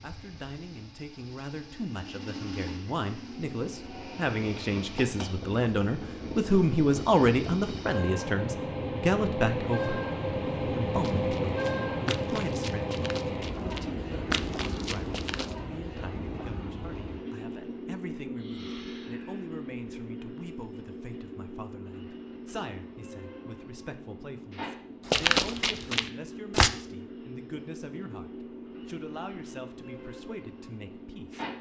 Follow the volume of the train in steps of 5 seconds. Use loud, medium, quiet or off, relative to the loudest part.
medium, loud, loud, medium, medium, medium, medium.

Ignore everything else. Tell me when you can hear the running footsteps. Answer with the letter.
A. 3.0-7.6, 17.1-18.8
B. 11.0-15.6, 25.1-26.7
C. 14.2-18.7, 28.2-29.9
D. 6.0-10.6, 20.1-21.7
B.